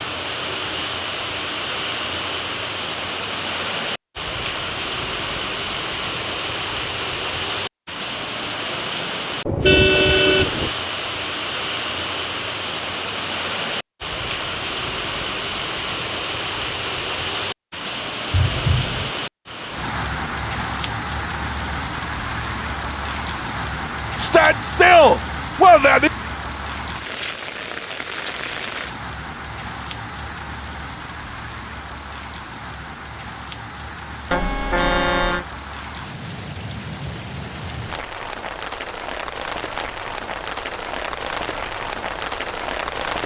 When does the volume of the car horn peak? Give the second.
10 s.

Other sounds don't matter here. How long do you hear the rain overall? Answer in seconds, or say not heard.
43 s.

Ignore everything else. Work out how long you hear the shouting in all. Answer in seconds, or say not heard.
2 s.